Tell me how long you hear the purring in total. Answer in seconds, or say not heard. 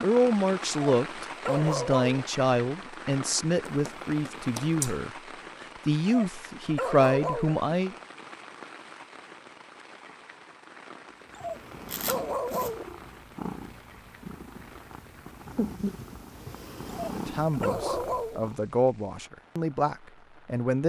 7 s.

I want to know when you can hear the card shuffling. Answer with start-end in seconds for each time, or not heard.
3.6-5.0, 11.8-12.7.